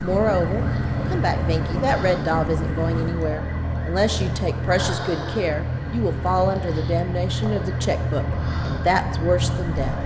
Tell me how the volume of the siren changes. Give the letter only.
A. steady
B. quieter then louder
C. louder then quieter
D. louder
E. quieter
A.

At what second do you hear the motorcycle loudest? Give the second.
2 s.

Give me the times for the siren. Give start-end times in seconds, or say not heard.
0.0-10.0.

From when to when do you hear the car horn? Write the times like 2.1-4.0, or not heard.
not heard.